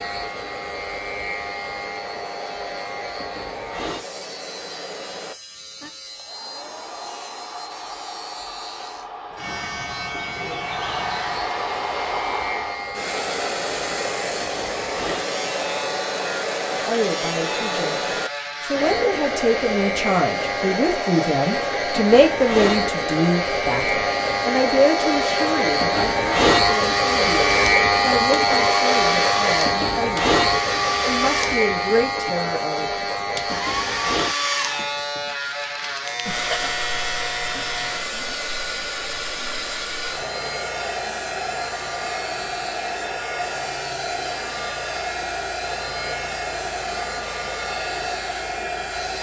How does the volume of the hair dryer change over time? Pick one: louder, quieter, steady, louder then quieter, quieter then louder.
louder.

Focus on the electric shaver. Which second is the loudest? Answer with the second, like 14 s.
28 s.